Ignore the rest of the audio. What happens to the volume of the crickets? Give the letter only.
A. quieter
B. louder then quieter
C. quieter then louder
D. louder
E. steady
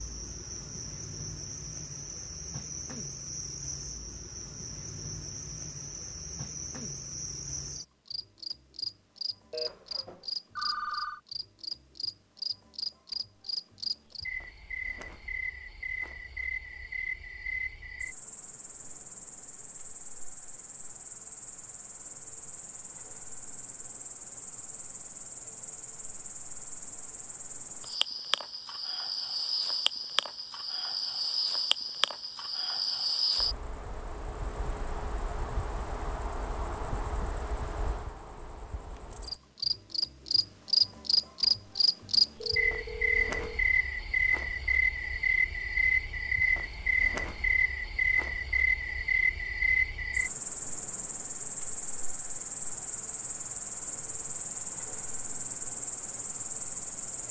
D.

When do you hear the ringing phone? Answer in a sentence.
The ringing phone can be heard from 9.5 to 11.2 s and from 42.4 to 43.6 s.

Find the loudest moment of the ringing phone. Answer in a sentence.
The volume of the ringing phone peaks at 11 seconds.